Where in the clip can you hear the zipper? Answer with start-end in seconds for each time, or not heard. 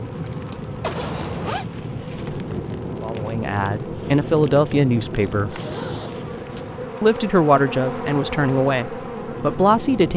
0.8-1.6, 5.4-6.6.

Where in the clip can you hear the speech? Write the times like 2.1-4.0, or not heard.
3.0-5.6, 7.0-10.1.